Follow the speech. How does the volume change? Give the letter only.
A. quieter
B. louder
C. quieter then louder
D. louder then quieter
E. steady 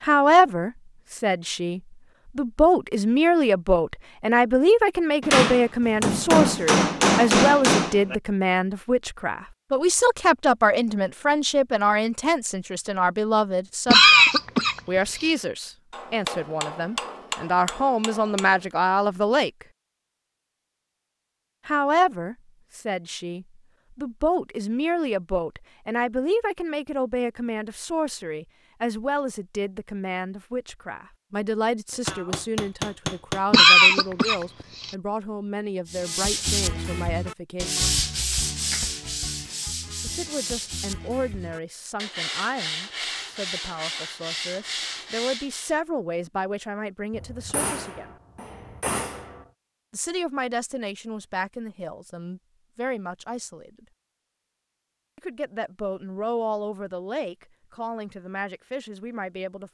A.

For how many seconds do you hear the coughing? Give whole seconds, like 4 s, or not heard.
3 s.